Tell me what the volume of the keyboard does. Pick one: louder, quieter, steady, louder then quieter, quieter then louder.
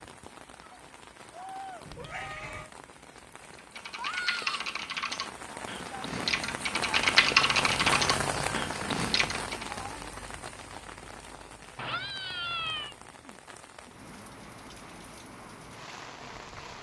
louder then quieter.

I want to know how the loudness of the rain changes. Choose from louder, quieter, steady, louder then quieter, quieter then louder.
louder then quieter.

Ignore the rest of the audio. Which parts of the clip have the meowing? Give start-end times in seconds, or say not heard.
1.9-2.7, 11.8-12.9.